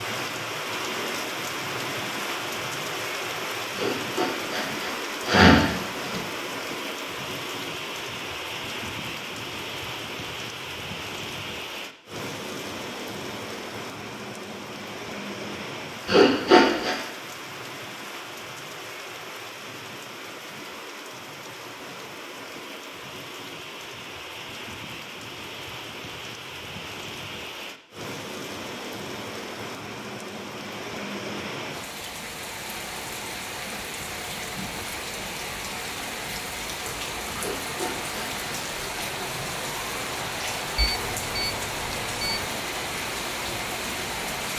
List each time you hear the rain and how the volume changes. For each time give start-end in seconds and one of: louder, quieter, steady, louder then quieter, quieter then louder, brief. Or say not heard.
0.0-44.5 quieter then louder.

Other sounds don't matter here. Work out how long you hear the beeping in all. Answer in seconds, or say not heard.
2 s.